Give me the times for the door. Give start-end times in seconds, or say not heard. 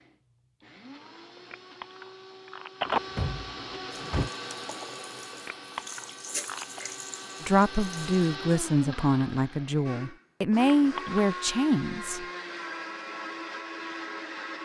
2.9-4.3.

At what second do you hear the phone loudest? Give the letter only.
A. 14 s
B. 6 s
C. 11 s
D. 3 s
D.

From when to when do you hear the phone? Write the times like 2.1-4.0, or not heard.
1.4-3.0, 5.3-6.8, 10.5-11.2.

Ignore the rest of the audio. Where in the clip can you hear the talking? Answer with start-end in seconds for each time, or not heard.
7.4-12.2.